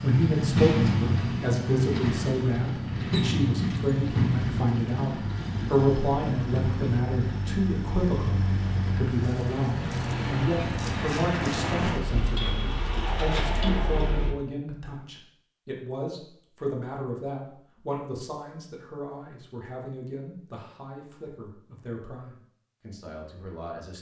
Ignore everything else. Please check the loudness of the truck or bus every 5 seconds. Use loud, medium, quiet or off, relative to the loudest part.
loud, medium, loud, off, off.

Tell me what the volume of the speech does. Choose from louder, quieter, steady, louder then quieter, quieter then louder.
quieter.